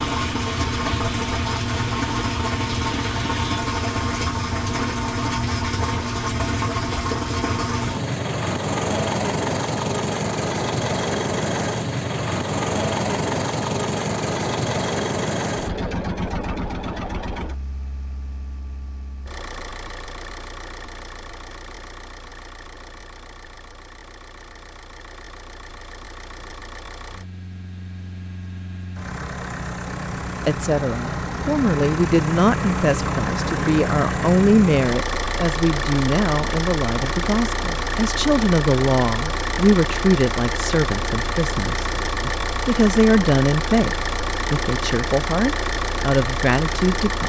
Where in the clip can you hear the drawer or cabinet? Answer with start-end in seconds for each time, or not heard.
not heard.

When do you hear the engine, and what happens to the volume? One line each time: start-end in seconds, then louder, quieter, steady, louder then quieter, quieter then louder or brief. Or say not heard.
0.0-47.2 quieter then louder.